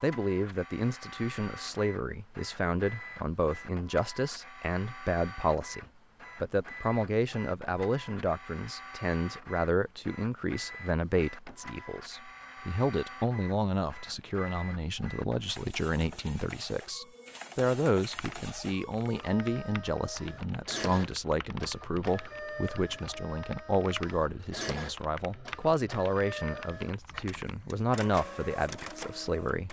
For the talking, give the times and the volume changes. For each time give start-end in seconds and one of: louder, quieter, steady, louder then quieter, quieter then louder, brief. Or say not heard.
0.0-29.6 steady.